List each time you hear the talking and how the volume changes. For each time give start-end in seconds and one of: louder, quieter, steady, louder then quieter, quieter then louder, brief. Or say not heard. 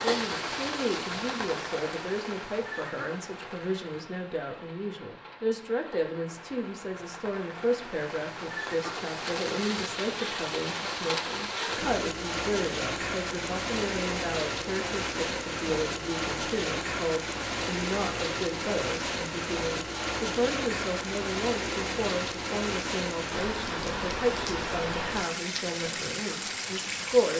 0.0-27.3 steady.